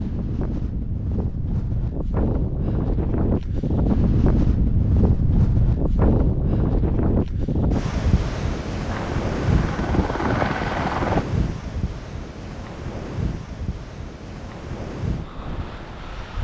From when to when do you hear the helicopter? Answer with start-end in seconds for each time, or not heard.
8.8-11.2.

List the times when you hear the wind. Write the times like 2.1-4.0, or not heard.
0.0-16.3.